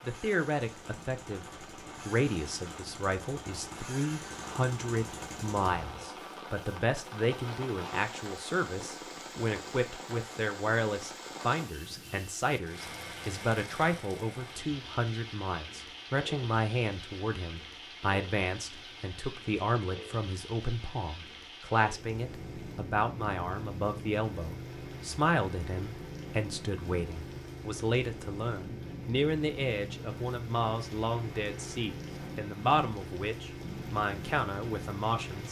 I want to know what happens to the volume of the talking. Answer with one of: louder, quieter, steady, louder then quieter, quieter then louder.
steady.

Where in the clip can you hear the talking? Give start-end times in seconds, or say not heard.
0.1-35.4.